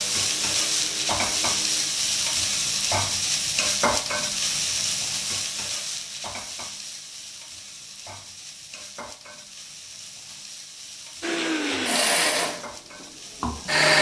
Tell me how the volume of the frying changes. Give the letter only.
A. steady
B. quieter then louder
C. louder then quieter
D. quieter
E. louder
D.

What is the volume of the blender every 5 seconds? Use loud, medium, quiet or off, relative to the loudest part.
quiet, off, loud.